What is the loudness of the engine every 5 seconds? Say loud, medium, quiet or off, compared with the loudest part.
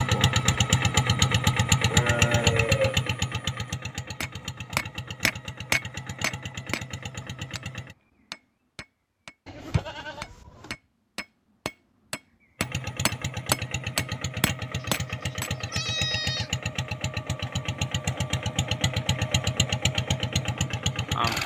loud, quiet, medium, medium, loud.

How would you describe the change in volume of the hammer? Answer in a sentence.
The volume of the hammer goes down, then up.